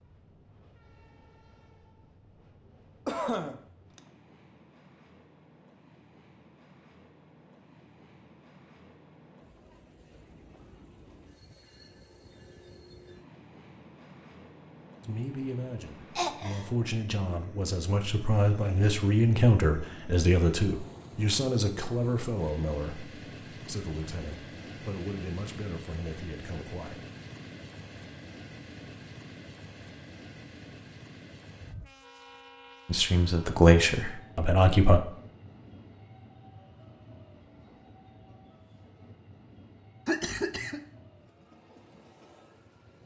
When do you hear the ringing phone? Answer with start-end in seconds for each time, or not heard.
not heard.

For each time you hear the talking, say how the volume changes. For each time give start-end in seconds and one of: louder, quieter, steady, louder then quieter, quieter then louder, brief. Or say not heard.
15.0-27.1 louder then quieter
32.9-35.0 brief.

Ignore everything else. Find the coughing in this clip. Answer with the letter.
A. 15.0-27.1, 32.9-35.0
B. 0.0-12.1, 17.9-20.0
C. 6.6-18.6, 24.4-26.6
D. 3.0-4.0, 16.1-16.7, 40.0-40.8
D.